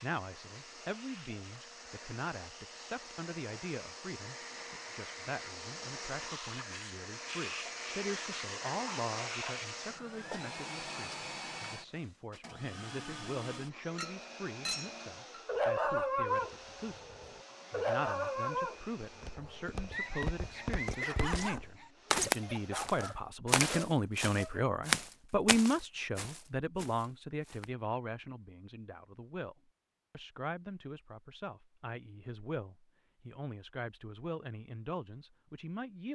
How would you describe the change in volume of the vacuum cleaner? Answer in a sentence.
The loudness of the vacuum cleaner goes up, then down.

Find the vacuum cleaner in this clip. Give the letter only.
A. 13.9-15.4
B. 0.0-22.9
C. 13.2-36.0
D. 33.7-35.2
B.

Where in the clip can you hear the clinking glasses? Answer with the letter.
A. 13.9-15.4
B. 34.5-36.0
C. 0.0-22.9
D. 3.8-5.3
A.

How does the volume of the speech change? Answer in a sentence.
The loudness of the speech goes up, then down.